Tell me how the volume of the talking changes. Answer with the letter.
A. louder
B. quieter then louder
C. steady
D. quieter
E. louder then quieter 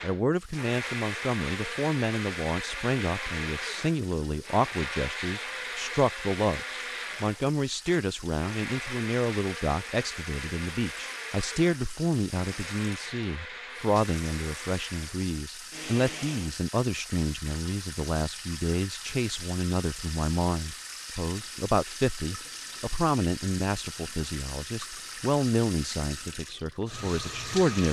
C.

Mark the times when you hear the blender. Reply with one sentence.
You can hear the blender from 0.0 to 16.6 s.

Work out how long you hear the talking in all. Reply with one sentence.
You can hear the talking for 28 seconds altogether.